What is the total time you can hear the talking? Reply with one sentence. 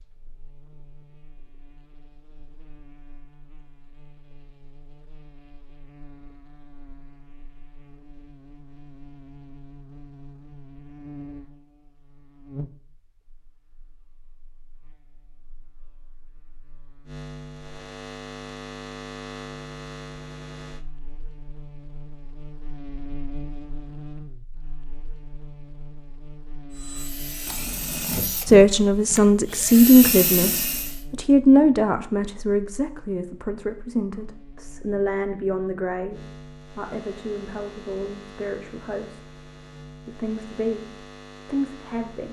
The talking can be heard for 13 seconds in total.